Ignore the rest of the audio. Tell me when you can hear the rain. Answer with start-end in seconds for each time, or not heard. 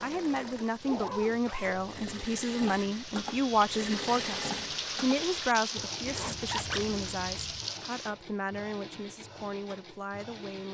0.0-8.1.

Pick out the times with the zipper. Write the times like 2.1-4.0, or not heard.
0.8-2.2, 6.0-7.7.